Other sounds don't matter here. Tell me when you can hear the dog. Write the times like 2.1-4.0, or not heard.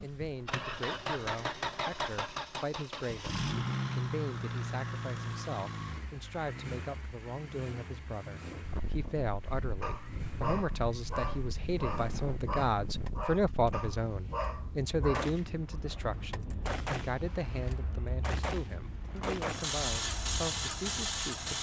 9.8-15.8.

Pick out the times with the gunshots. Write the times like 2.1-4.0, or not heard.
15.1-19.7.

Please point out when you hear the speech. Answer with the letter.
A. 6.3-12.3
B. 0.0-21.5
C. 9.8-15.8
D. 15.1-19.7
B.